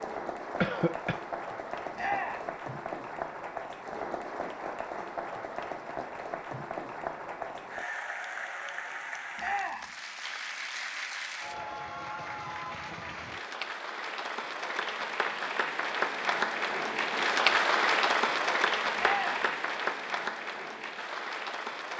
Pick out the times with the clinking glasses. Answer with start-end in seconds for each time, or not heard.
not heard.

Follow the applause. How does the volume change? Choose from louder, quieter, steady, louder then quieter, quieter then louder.
louder.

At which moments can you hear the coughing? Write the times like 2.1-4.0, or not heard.
0.6-1.2.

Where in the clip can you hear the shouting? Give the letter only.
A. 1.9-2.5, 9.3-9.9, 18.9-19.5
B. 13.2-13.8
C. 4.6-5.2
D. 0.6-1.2
A.